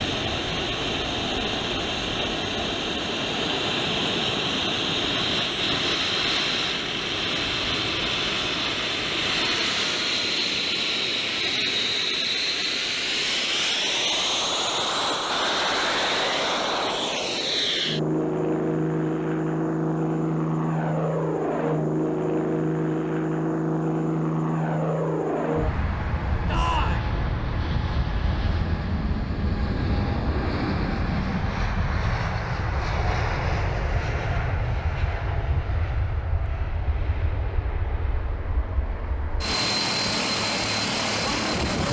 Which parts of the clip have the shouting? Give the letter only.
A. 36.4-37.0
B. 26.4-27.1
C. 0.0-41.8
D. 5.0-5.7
B.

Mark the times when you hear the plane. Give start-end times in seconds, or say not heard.
0.0-41.8.